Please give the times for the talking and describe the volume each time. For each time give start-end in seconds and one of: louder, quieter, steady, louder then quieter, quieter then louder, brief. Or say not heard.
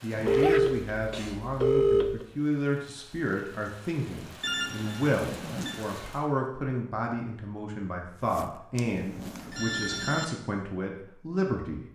0.0-11.8 steady.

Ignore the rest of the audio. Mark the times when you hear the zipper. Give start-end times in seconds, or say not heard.
0.1-0.6, 5.2-5.8, 8.2-9.7.